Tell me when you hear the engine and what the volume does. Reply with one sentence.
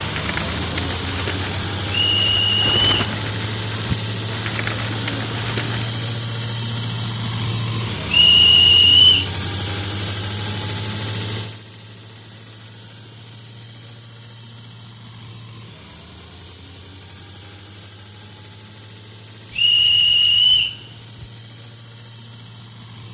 The engine can be heard from 0.0 to 23.0 s, getting quieter.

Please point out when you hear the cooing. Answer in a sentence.
You can hear the cooing from 0.0 to 6.0 s.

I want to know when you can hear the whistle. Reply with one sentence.
The whistle can be heard from 1.9 to 2.9 s, from 8.1 to 9.2 s and from 19.6 to 20.8 s.